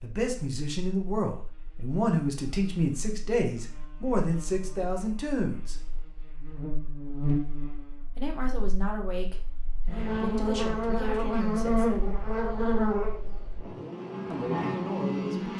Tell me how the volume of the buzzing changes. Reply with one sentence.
The volume of the buzzing goes up.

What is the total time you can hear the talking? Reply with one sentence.
You can hear the talking for 11 seconds altogether.